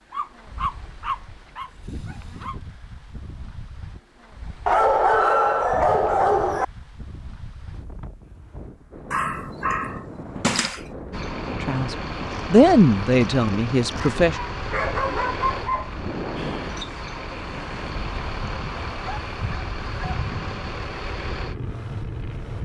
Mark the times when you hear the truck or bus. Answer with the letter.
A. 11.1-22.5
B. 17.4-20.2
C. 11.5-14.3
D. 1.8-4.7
A.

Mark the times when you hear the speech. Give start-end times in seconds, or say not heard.
11.5-14.3.